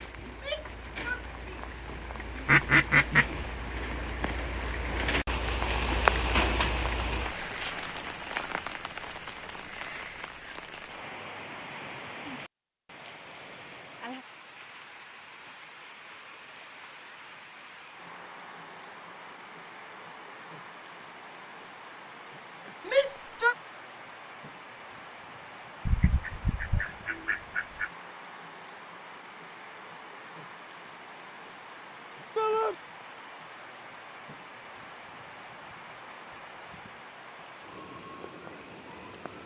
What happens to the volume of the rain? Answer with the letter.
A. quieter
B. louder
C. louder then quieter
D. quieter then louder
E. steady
A.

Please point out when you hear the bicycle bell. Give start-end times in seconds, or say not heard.
not heard.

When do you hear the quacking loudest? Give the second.
3 s.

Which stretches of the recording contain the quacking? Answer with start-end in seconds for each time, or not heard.
2.5-3.5, 25.9-27.9.